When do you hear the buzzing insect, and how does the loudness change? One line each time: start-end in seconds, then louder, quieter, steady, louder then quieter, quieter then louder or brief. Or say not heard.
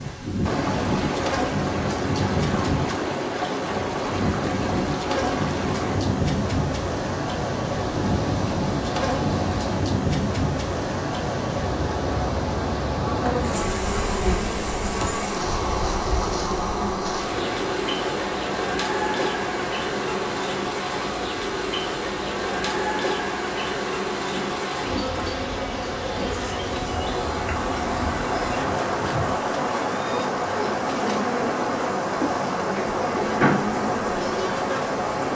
0.0-35.3 steady.